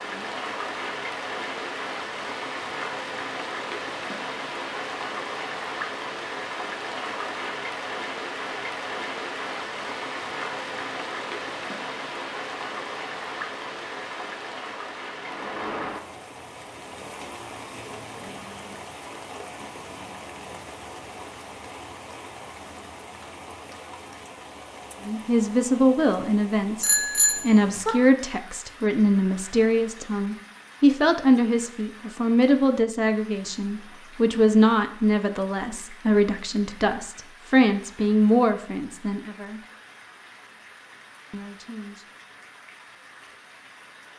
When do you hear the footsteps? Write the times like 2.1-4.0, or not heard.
not heard.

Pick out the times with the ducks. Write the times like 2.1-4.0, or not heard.
not heard.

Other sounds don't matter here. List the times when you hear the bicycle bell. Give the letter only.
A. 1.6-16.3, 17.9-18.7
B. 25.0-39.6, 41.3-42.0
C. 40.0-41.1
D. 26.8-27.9
D.